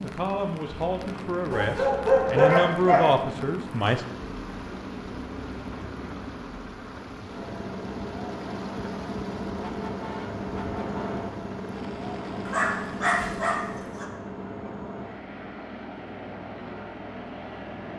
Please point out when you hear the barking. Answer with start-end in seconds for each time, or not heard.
1.5-3.1, 12.4-14.1.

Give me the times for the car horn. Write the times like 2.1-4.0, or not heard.
9.6-11.2.